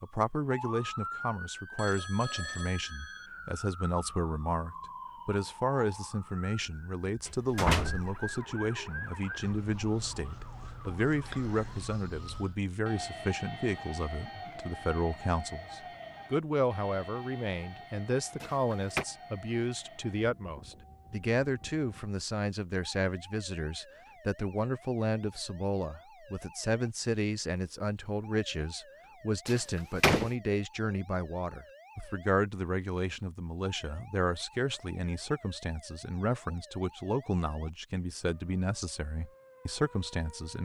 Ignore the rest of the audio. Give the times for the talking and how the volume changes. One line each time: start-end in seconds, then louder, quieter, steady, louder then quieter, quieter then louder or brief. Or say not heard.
0.0-40.6 steady.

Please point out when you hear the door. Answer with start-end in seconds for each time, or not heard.
7.2-8.2, 18.4-19.1, 29.4-30.3.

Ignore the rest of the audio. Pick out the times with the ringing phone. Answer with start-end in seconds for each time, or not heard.
1.8-3.3.